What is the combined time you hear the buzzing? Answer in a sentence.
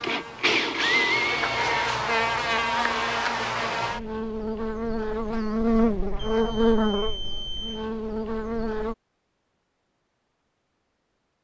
You can hear the buzzing for 9 seconds altogether.